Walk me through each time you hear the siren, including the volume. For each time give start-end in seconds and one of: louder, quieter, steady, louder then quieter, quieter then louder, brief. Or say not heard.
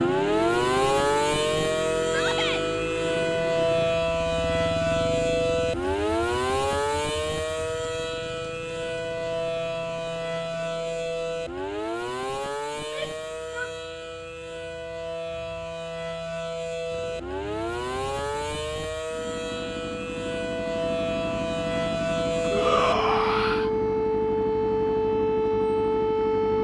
0.0-26.5 quieter then louder.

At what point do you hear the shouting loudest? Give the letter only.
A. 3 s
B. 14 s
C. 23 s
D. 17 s
C.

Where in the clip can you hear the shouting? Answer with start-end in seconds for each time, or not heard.
2.0-2.6, 12.8-13.7, 22.5-23.7.